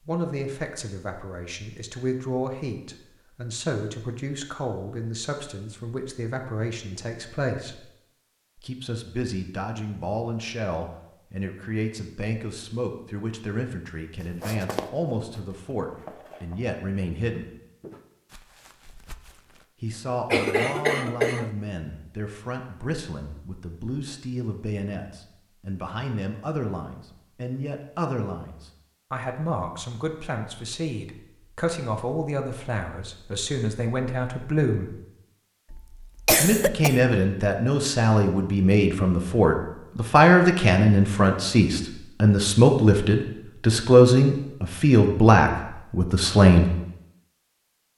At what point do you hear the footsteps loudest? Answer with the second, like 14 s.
15 s.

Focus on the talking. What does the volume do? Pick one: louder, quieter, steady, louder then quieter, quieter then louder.
louder.